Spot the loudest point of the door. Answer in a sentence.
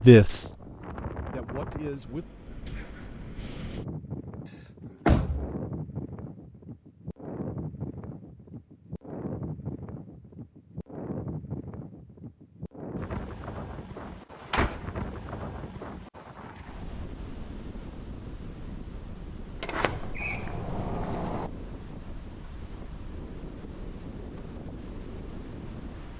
The volume of the door peaks at 5 seconds.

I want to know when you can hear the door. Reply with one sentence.
You can hear the door from 4.5 to 5.5 s, from 14.1 to 14.9 s and from 19.6 to 21.5 s.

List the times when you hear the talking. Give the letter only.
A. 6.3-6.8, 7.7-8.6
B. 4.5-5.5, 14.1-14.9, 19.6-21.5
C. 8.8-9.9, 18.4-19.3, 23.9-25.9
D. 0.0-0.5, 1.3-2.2
D.